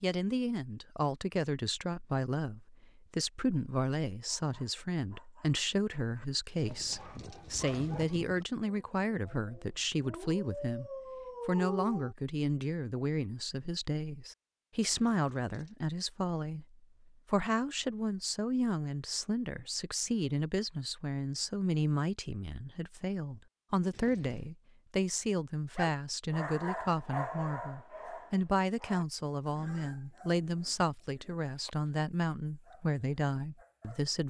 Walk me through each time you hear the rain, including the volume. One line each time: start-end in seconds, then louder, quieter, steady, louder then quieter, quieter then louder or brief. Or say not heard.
not heard.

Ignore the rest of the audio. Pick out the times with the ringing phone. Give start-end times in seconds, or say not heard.
not heard.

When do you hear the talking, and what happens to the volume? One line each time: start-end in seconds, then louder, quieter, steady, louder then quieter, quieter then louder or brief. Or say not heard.
0.0-34.2 steady.